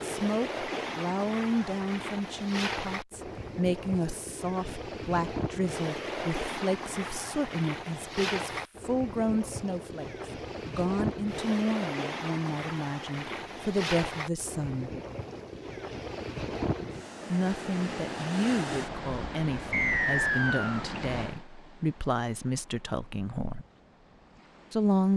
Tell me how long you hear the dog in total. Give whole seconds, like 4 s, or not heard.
not heard.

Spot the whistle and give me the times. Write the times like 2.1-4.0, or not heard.
19.7-20.9.